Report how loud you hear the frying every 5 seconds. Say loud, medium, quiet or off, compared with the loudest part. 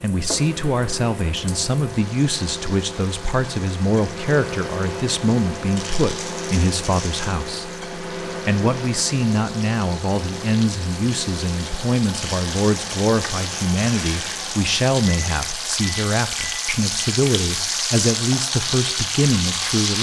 quiet, quiet, medium, loud.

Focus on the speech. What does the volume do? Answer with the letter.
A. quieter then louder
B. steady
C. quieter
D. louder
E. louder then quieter
B.